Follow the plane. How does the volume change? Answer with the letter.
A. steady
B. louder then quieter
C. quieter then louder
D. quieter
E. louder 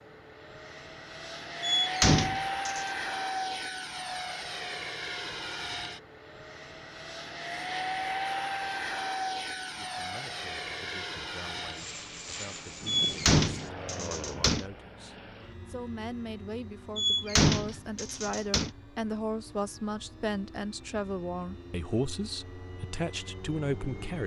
D.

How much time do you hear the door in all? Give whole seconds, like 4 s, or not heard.
5 s.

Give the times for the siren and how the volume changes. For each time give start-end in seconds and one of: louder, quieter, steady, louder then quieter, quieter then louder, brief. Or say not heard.
not heard.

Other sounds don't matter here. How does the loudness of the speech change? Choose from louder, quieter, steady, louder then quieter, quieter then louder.
louder.